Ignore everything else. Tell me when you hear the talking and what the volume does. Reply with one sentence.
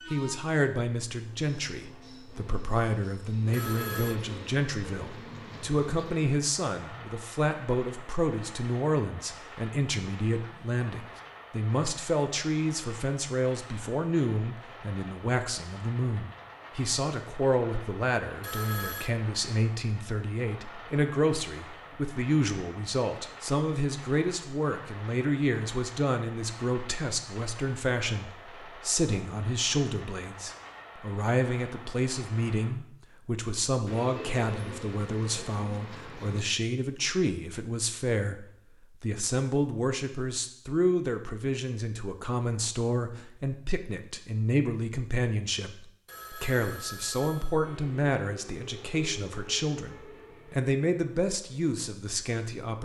You can hear the talking from 0.1 to 52.8 s, at a steady volume.